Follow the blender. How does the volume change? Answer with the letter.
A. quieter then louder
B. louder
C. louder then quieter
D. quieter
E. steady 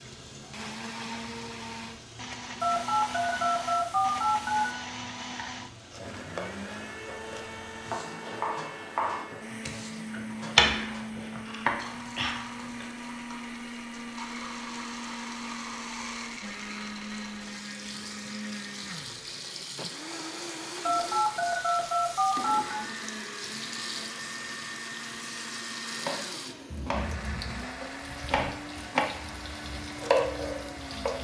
E.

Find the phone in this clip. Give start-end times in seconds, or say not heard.
2.6-4.8, 20.8-22.9.